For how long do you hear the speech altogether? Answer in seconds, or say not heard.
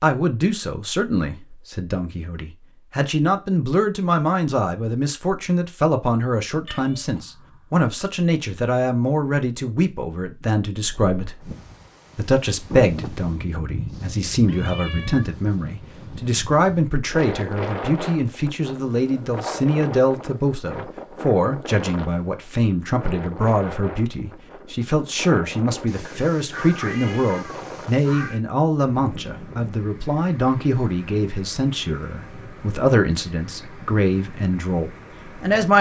35 s.